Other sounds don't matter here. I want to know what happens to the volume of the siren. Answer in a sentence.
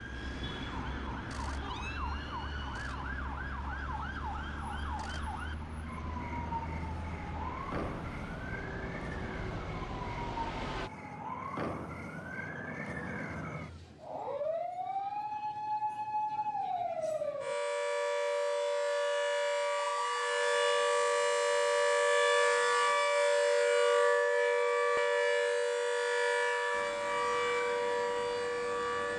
The volume of the siren goes up.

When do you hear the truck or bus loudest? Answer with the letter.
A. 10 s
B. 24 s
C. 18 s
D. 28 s
A.